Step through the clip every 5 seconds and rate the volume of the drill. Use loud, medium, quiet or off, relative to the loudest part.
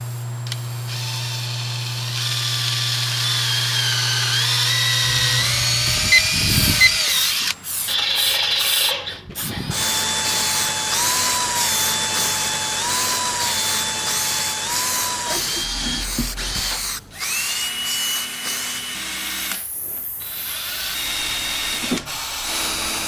loud, loud, loud, medium, medium.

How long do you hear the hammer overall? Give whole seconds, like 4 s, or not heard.
not heard.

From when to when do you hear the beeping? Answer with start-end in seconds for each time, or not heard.
5.0-6.9.